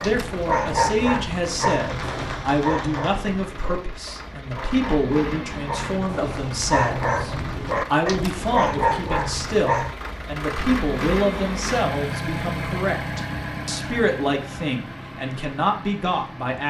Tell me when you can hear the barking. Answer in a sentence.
The barking can be heard from 0.0 to 9.9 s.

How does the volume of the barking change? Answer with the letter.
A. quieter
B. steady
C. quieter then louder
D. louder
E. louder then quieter
C.